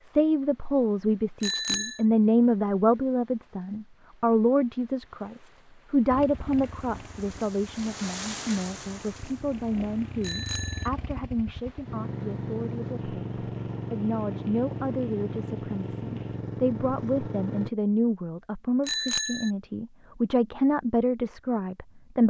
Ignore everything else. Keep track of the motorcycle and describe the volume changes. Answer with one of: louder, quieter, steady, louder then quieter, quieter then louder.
louder.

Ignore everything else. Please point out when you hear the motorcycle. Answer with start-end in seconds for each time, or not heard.
6.1-17.7.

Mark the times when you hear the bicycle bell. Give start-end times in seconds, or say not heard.
1.4-1.9, 10.2-10.9, 18.9-19.5.